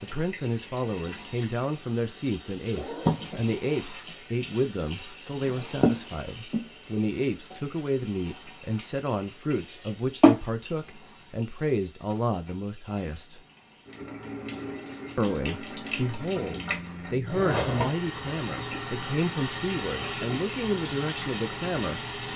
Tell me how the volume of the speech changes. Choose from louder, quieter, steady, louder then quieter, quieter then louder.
steady.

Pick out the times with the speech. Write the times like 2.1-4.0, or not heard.
0.0-13.4, 15.2-22.3.